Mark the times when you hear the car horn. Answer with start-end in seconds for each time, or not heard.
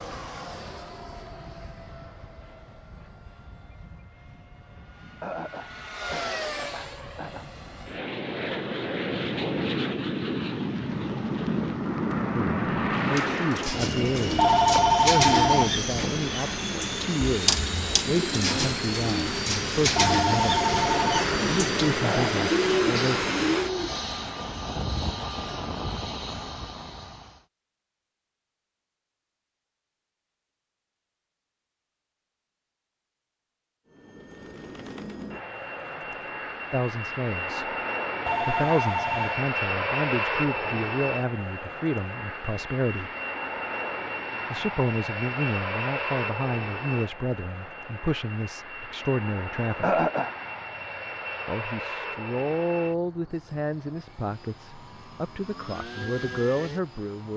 not heard.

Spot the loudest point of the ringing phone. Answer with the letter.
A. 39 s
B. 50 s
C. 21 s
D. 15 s
D.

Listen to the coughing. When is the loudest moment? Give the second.
50 s.